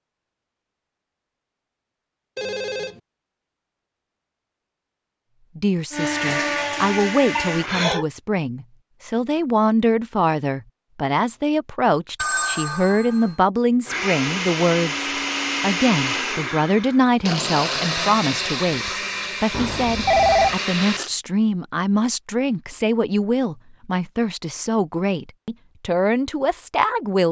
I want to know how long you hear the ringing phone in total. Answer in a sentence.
You can hear the ringing phone for 3 seconds altogether.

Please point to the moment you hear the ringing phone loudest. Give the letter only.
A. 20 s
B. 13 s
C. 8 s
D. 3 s
A.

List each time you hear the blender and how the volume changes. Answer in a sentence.
The blender can be heard briefly from 5.9 to 8.0 s; and from 13.8 to 21.1 s, at a steady volume.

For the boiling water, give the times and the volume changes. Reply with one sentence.
The boiling water can't be heard in this clip.